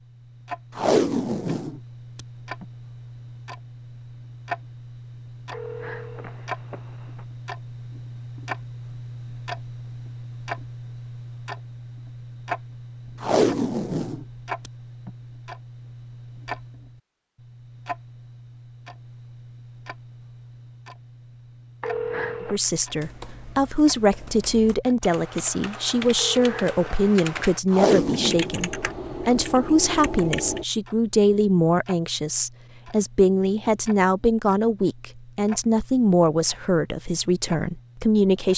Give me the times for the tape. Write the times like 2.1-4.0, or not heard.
0.8-2.6, 13.2-15.1, 27.7-28.5.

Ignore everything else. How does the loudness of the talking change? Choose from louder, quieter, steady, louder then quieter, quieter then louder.
steady.